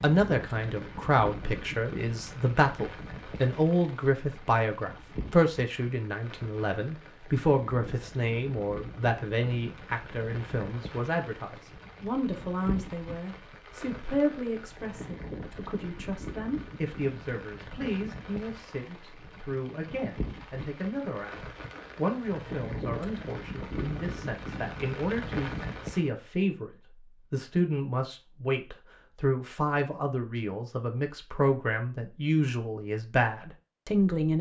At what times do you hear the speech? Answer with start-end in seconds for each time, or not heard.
0.0-26.7, 27.3-34.3.